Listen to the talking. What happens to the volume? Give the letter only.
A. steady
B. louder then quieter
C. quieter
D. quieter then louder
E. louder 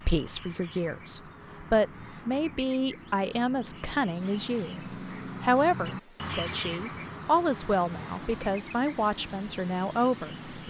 A.